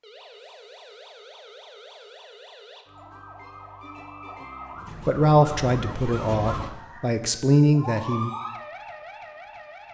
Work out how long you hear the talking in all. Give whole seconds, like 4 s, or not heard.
3 s.